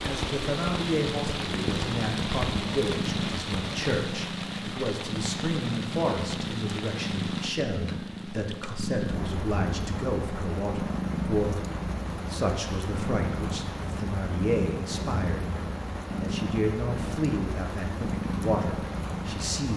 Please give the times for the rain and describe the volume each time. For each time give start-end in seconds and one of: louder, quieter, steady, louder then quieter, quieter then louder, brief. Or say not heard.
0.0-19.7 quieter.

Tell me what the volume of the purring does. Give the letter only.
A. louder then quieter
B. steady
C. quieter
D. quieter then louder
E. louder
B.